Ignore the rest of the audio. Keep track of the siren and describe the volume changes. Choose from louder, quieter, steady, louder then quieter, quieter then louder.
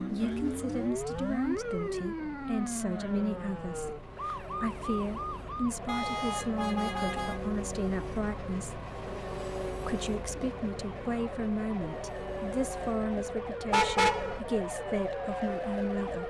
quieter then louder.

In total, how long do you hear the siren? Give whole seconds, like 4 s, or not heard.
16 s.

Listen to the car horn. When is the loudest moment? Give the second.
14 s.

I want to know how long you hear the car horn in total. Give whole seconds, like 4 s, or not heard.
3 s.